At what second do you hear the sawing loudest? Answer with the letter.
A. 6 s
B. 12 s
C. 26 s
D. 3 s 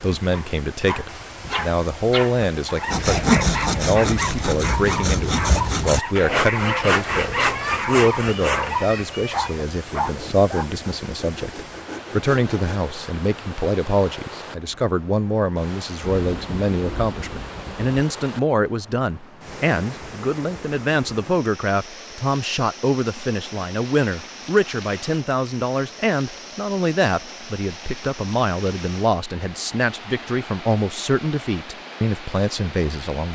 D.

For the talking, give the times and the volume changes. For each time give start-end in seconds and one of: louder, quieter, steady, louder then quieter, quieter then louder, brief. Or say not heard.
0.0-33.2 steady.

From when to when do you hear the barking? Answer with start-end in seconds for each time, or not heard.
0.3-10.7.